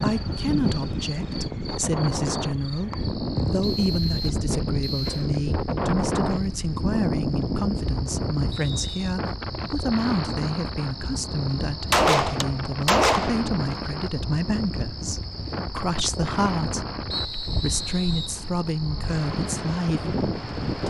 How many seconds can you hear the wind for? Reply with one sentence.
The wind can be heard for 21 seconds in total.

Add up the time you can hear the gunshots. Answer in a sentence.
You can hear the gunshots for 2 seconds altogether.